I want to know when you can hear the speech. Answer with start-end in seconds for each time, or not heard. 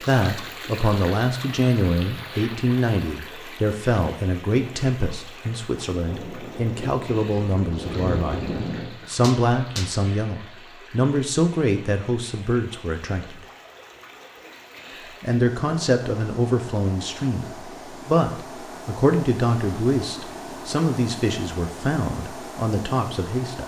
0.0-13.4, 15.2-23.6.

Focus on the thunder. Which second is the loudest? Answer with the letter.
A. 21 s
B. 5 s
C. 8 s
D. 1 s
C.